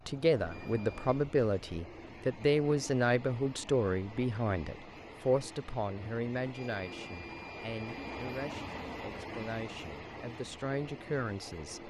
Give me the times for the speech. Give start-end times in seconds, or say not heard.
0.1-11.8.